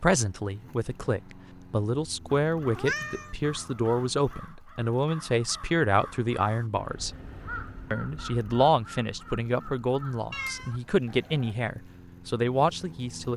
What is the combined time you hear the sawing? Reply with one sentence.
You can't hear the sawing here.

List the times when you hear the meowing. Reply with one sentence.
The meowing can be heard from 2.7 to 3.4 s and from 10.3 to 10.8 s.